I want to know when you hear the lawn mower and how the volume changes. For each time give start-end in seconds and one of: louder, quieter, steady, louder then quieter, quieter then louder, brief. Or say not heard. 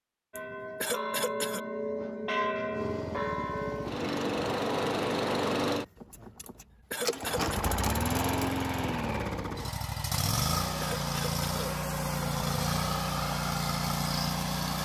2.7-14.8 steady.